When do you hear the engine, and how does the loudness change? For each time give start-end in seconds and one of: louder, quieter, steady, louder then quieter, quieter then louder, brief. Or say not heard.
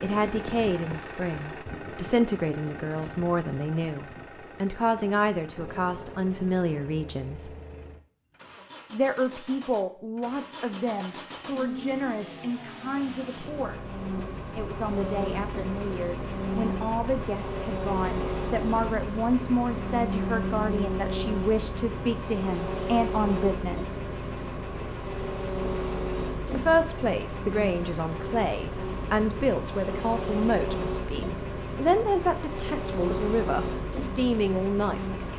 0.0-35.3 louder.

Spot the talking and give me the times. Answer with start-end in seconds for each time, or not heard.
0.0-7.5, 8.9-13.8, 14.6-24.0, 26.6-35.3.